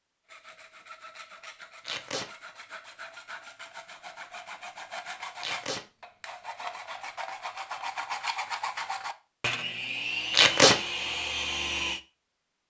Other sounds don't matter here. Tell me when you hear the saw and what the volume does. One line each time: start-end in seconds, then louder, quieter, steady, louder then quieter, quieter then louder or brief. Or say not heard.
0.2-12.0 louder.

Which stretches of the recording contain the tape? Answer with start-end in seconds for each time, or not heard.
1.8-2.3, 5.4-5.8, 10.3-10.8.